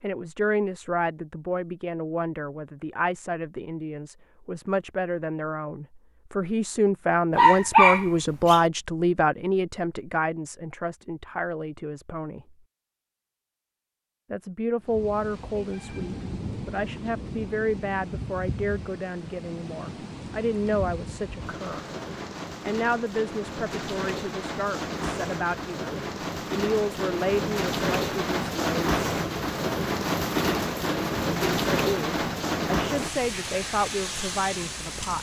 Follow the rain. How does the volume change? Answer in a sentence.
The loudness of the rain goes up.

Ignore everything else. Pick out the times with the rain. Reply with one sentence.
You can hear the rain from 14.8 to 35.1 s.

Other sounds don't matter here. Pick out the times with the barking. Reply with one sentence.
The barking can be heard from 7.3 to 8.6 s.